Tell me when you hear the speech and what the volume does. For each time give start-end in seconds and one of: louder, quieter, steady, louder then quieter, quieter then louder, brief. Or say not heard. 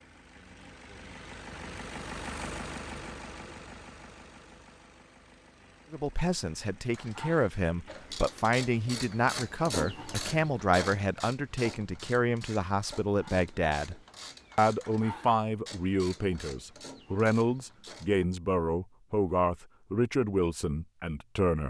5.9-13.9 steady
14.6-21.6 steady.